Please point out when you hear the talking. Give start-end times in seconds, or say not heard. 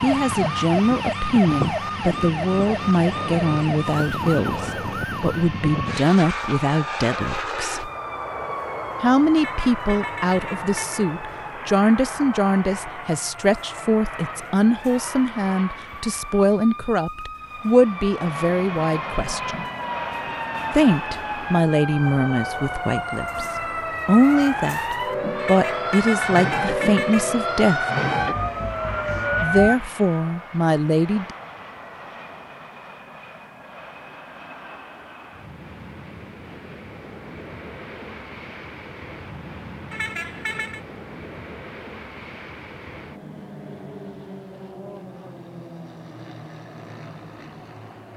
0.0-7.9, 9.0-19.6, 20.7-23.4, 24.1-27.9, 29.4-31.3.